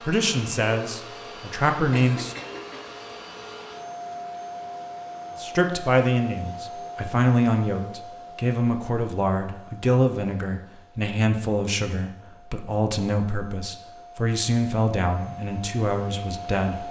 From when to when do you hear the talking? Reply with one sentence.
You can hear the talking from 0.0 to 2.4 s and from 5.3 to 16.8 s.